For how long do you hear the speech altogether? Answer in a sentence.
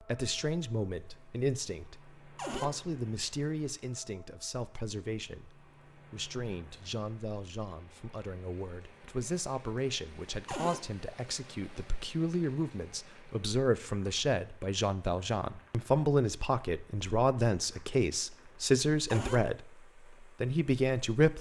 You can hear the speech for 21 seconds altogether.